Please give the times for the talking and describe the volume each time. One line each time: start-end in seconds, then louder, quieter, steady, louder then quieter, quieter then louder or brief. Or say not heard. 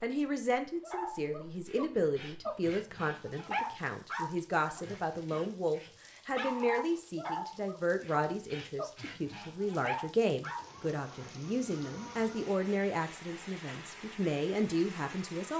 0.0-15.5 steady.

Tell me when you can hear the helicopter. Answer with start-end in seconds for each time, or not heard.
not heard.